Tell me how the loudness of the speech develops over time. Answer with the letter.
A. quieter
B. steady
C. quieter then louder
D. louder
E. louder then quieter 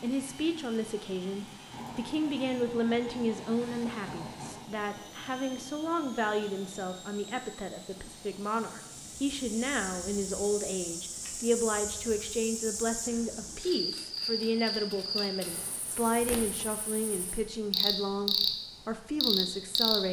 B.